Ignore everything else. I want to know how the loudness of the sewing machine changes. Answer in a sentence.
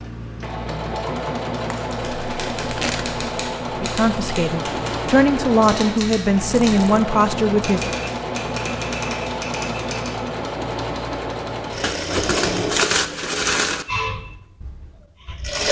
The volume of the sewing machine stays about the same.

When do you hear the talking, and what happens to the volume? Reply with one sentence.
You can hear the talking from 3.8 to 7.8 s, getting louder.